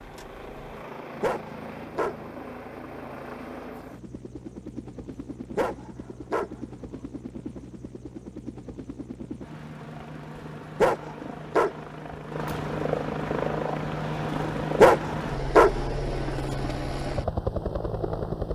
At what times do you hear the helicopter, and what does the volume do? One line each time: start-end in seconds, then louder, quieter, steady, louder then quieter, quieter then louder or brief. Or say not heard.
0.0-18.4 louder.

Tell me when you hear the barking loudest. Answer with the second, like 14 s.
15 s.